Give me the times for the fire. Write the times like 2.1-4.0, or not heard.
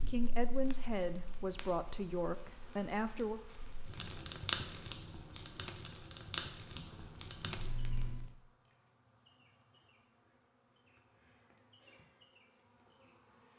0.0-8.3.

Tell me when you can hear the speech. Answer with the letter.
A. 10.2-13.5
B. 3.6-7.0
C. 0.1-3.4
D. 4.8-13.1
C.